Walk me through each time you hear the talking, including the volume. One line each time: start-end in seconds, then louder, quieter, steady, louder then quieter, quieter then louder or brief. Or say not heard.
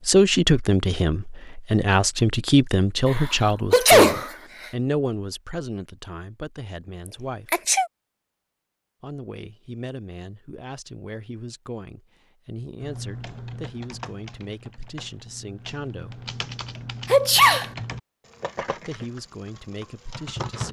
0.1-7.7 quieter
9.0-16.2 steady
18.7-20.6 brief.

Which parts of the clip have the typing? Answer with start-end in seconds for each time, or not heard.
12.8-20.6.